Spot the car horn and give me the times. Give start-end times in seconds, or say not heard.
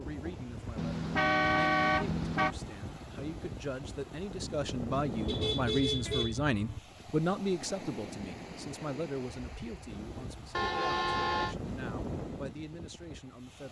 0.8-2.5, 5.2-6.8, 10.5-11.6.